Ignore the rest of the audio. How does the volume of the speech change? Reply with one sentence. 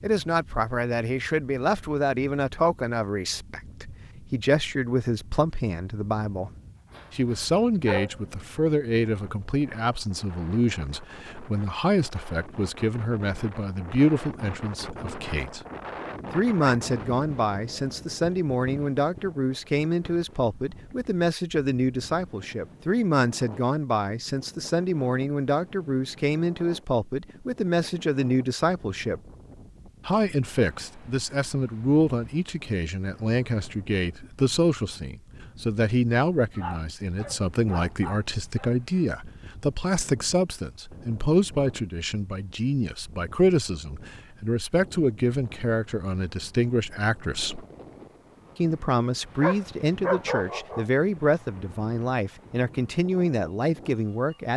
The loudness of the speech stays about the same.